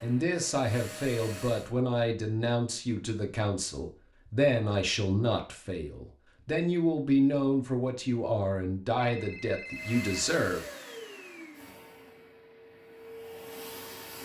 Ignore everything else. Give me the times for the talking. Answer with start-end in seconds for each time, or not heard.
0.0-10.7.